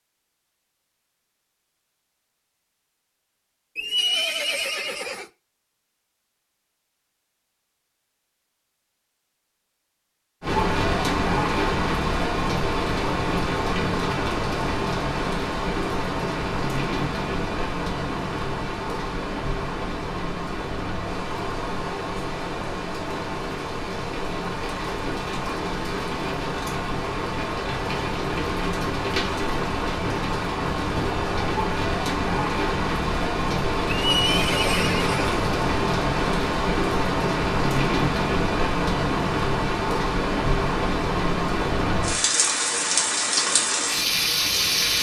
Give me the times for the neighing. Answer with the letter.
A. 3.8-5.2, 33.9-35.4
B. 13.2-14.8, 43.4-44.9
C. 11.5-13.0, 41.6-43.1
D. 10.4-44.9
A.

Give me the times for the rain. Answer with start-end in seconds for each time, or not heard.
10.4-44.9.